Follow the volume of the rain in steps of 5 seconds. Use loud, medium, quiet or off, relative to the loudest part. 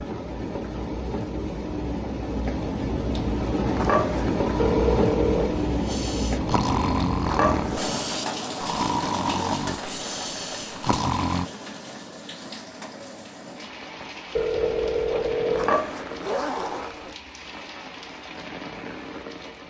loud, loud, medium, medium.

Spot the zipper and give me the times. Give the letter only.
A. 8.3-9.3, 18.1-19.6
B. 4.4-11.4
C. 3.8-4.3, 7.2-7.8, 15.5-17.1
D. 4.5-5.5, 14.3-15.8
C.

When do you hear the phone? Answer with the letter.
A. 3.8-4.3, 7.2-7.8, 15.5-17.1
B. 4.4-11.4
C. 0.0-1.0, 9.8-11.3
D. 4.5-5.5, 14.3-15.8
D.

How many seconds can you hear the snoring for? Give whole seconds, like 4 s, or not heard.
7 s.